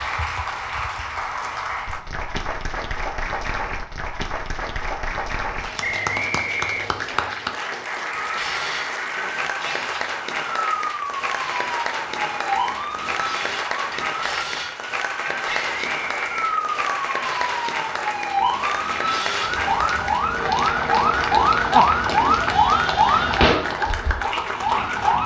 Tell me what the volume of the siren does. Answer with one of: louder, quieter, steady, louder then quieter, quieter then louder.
louder.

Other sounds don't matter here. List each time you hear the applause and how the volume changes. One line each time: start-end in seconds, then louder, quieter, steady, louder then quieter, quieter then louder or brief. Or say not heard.
0.0-25.2 steady.